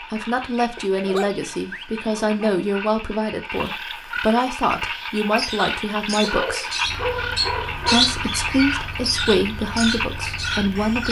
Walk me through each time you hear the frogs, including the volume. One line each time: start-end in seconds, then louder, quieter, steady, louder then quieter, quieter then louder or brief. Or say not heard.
0.0-11.0 louder.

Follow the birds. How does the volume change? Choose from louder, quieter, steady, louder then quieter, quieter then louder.
louder then quieter.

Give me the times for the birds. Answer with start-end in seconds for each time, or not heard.
5.2-11.0.